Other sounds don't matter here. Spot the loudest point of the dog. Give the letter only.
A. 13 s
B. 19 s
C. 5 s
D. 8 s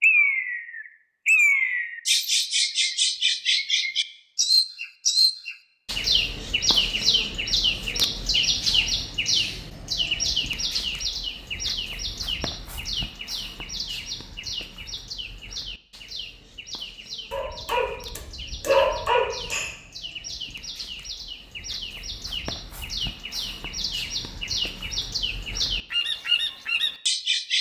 B.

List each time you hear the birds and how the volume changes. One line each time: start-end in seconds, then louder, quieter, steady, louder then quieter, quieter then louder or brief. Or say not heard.
0.0-27.5 quieter then louder.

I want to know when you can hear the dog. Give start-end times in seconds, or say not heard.
17.3-19.8.